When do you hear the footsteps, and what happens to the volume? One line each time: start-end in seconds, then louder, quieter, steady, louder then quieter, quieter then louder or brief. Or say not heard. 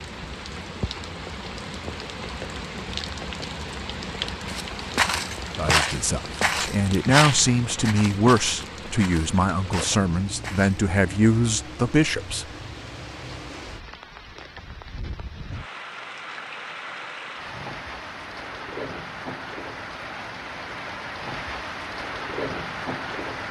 4.5-10.9 quieter.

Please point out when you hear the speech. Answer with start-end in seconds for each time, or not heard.
5.5-12.4.